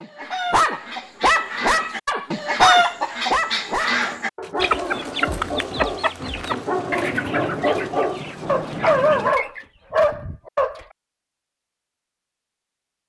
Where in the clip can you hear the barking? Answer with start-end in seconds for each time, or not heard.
0.5-10.8.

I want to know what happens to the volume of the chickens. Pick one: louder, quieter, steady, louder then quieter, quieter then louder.
louder then quieter.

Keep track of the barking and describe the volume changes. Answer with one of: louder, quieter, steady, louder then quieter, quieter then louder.
quieter then louder.